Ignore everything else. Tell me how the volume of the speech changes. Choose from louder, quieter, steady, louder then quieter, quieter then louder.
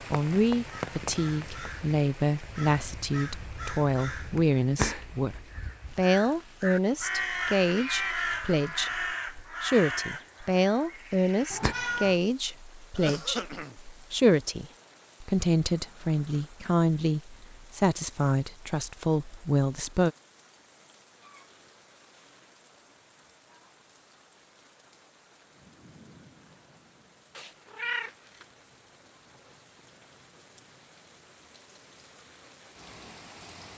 steady.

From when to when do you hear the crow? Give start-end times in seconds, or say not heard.
0.6-11.8.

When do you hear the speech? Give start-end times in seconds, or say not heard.
0.1-20.1.